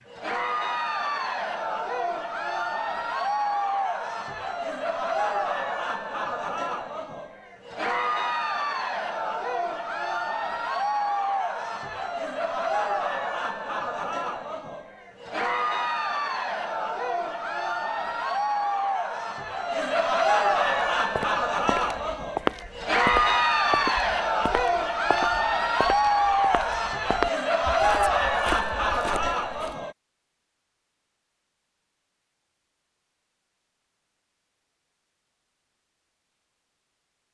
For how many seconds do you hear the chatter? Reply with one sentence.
You can hear the chatter for 30 seconds altogether.